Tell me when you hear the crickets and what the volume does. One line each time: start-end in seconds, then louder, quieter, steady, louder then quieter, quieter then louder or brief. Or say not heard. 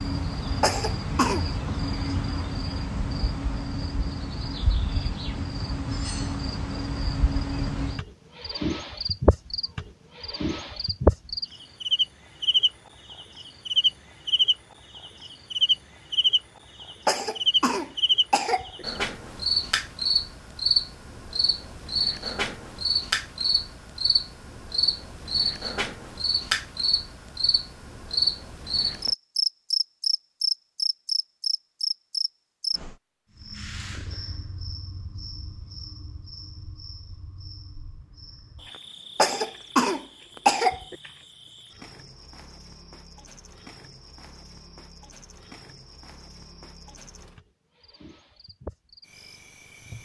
0.0-49.9 louder then quieter.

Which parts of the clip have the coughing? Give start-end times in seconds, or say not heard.
0.6-1.4, 17.1-18.9, 39.1-41.0.